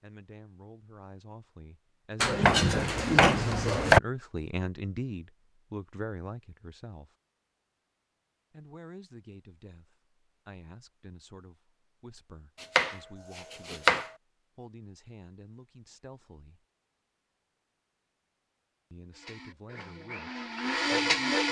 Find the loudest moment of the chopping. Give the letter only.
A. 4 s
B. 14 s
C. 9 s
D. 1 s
A.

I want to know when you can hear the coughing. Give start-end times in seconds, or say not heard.
not heard.